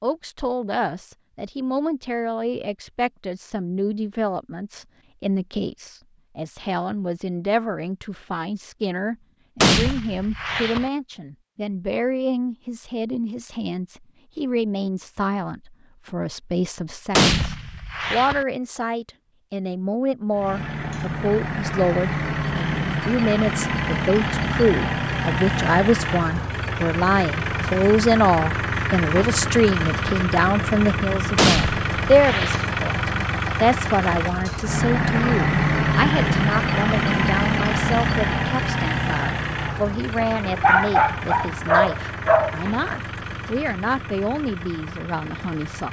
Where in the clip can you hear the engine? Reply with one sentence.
You can hear the engine from 20.3 to 45.8 s.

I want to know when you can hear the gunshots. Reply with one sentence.
You can hear the gunshots from 9.6 to 10.9 s, from 17.1 to 18.4 s and from 31.4 to 32.6 s.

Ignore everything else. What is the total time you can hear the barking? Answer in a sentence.
You can hear the barking for 3 seconds altogether.